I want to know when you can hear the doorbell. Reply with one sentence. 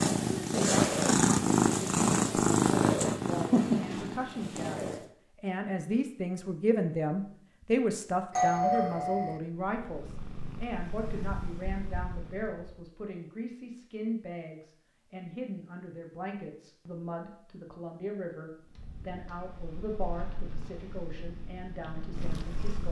You can hear the doorbell from 8.3 to 9.4 s.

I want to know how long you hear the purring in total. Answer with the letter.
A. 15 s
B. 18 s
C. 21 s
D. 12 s
D.